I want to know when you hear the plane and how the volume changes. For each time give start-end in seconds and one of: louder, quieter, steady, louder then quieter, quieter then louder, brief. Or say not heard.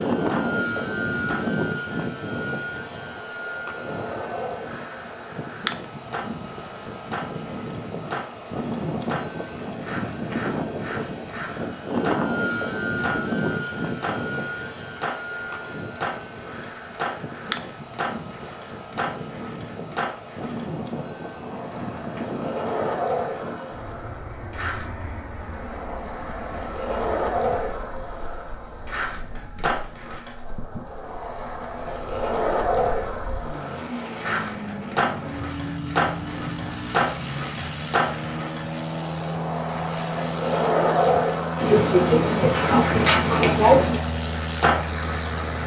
0.0-45.6 quieter then louder.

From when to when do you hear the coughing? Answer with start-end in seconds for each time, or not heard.
41.5-44.0.